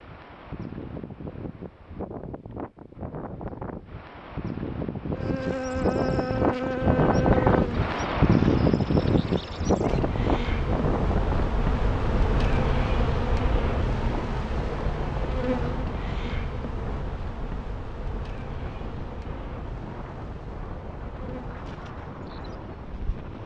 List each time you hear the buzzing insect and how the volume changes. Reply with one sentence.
You can hear the buzzing insect from 5.1 to 23.4 s, getting quieter.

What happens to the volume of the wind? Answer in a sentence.
The loudness of the wind goes up, then down.